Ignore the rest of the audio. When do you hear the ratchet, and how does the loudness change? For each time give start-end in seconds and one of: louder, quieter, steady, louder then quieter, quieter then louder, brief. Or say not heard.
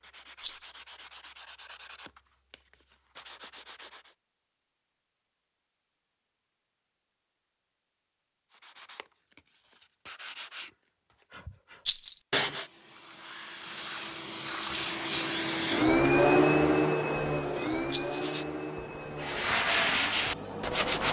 not heard.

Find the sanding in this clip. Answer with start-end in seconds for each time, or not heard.
0.0-4.2, 8.5-12.7, 18.0-21.0.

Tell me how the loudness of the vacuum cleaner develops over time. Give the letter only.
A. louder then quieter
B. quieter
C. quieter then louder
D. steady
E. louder
A.